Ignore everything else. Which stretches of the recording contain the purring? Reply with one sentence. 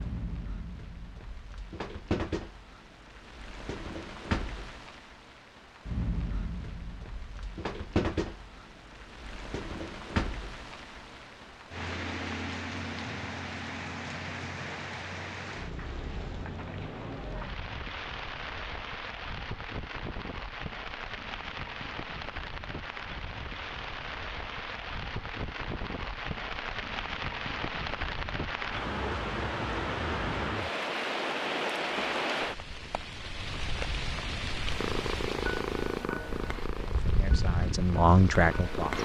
The purring can be heard from 34.5 to 38.9 s.